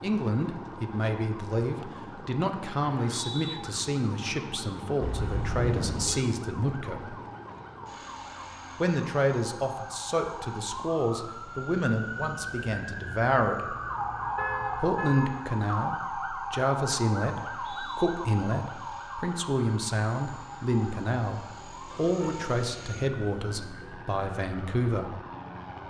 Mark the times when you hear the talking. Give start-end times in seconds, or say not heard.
0.0-7.2, 8.8-13.8, 14.8-25.2.